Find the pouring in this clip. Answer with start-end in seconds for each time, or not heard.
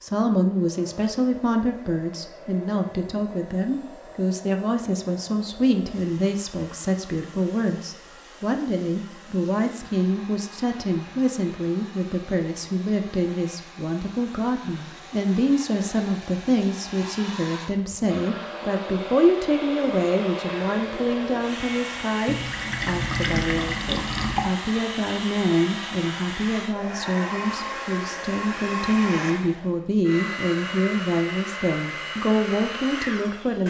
22.2-24.5.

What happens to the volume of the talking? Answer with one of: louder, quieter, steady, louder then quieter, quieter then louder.
steady.